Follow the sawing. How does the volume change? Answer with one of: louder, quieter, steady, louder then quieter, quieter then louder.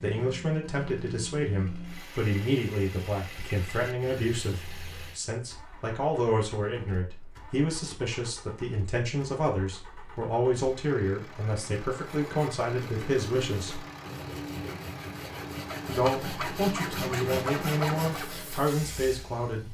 louder.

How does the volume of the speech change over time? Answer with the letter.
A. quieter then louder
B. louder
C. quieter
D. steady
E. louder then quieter
D.